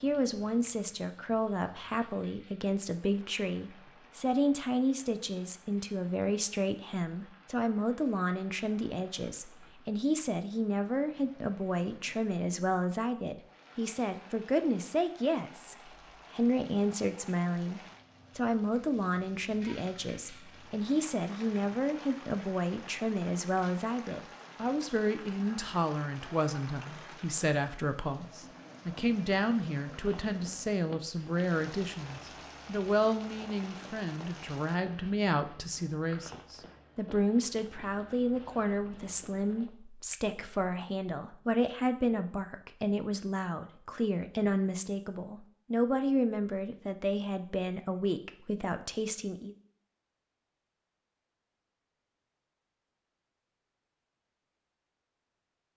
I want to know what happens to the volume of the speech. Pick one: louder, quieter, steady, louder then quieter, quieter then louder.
steady.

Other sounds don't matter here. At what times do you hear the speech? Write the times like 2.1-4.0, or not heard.
0.0-49.5.